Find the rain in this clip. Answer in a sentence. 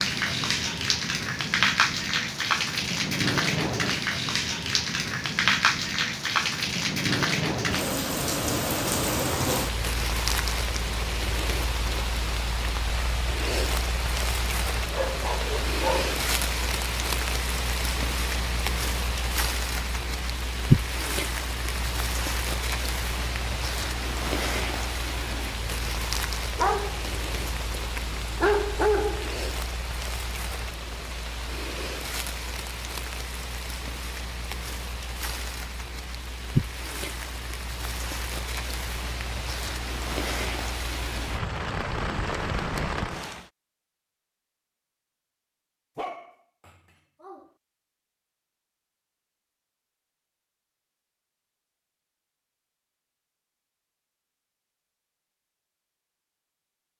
The rain can be heard from 0.0 to 43.5 s.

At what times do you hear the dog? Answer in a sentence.
You can hear the dog from 14.9 to 16.1 s, from 26.6 to 29.4 s and from 46.0 to 47.5 s.